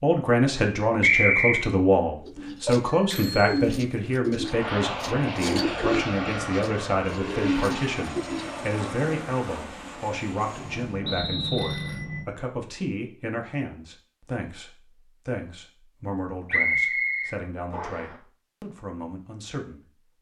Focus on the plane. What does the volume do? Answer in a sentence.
The loudness of the plane goes down.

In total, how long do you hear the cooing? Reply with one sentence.
The cooing can be heard for 6 seconds in total.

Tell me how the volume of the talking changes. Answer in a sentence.
The volume of the talking goes down.